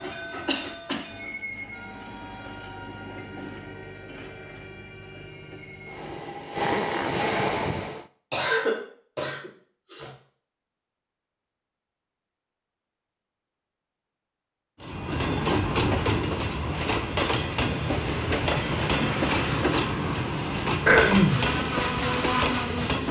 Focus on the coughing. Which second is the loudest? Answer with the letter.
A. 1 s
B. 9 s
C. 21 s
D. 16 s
C.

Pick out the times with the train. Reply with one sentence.
The train can be heard from 0.0 to 8.1 s and from 14.8 to 23.0 s.